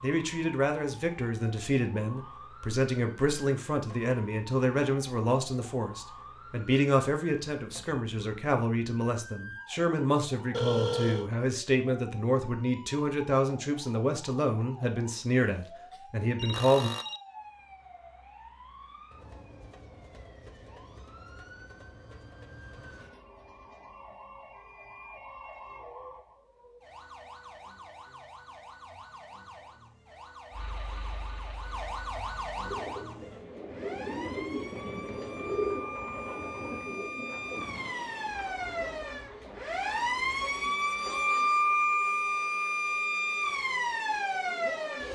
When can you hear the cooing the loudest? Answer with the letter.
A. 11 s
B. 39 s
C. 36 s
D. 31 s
C.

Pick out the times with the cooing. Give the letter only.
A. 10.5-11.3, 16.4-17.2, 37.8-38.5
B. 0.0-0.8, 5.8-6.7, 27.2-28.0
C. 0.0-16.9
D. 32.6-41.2
D.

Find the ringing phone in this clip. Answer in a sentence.
You can hear the ringing phone from 10.5 to 11.3 s, from 16.4 to 17.2 s and from 37.8 to 38.5 s.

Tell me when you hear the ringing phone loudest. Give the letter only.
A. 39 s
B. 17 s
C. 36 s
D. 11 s
D.